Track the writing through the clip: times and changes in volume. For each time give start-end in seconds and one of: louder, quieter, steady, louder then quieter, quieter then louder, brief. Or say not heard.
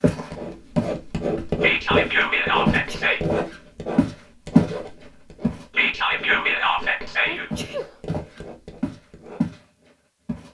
0.2-9.4 quieter.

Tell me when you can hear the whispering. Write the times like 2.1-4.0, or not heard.
1.6-3.2, 5.7-7.5.